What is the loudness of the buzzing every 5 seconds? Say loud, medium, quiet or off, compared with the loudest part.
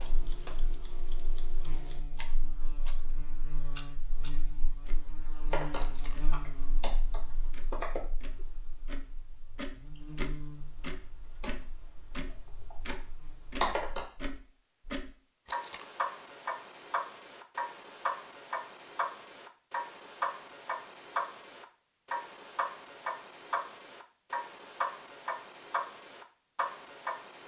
loud, loud, loud, off, off, off.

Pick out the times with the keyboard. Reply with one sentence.
You can hear the keyboard from 5.5 to 14.1 s.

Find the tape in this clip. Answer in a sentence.
You can hear the tape from 5.8 to 6.2 s and from 15.4 to 15.8 s.